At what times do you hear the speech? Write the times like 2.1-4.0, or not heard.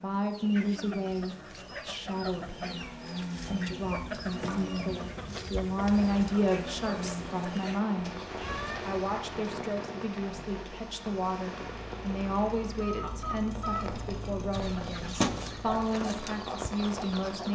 0.0-2.9, 3.5-8.2, 8.8-17.5.